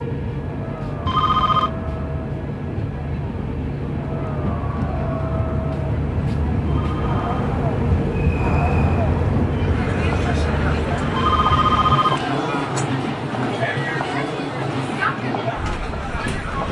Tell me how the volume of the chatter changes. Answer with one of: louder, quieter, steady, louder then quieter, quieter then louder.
louder.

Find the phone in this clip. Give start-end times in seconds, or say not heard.
1.1-1.7, 6.7-7.3, 11.2-12.3.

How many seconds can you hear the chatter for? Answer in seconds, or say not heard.
16 s.